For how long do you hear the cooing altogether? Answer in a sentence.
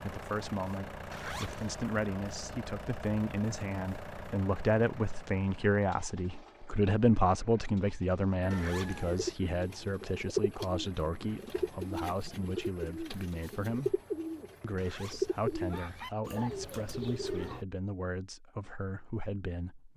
The cooing can be heard for 9 seconds in total.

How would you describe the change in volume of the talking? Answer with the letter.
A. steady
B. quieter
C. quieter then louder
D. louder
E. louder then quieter
E.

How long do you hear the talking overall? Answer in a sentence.
The talking can be heard for 19 seconds in total.